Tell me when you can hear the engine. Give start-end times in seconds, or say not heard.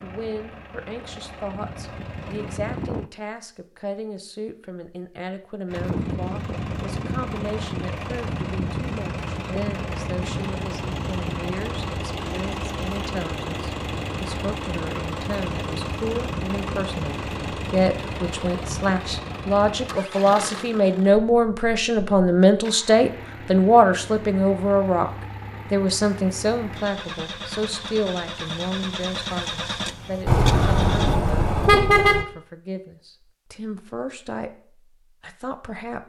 0.0-3.1, 5.7-31.1.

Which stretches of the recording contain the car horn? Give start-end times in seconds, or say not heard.
30.2-32.2.